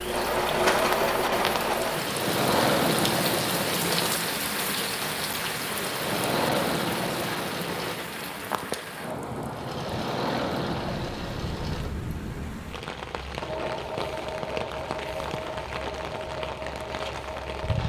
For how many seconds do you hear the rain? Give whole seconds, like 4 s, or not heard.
18 s.